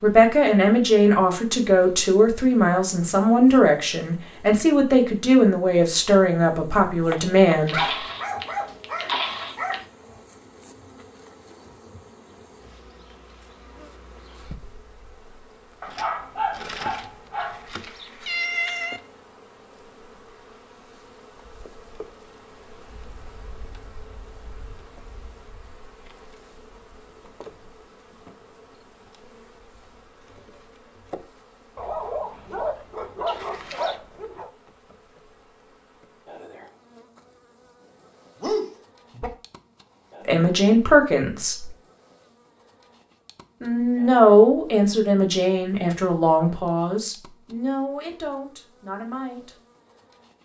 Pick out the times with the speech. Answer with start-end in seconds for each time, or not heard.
0.0-7.9, 40.2-41.7, 43.6-49.5.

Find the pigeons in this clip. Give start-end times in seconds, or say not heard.
not heard.